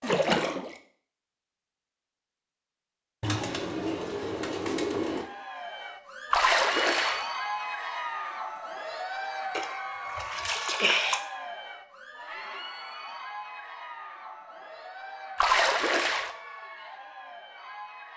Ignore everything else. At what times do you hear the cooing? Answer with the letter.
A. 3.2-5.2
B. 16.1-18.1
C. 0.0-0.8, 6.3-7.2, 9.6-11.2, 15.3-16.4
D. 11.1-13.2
A.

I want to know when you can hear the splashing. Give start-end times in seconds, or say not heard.
0.0-0.8, 6.3-7.2, 9.6-11.2, 15.3-16.4.